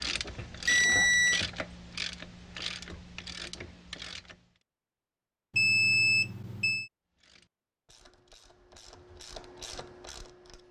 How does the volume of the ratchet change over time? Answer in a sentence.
The loudness of the ratchet goes down, then up.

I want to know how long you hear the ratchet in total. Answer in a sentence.
The ratchet can be heard for 8 seconds in total.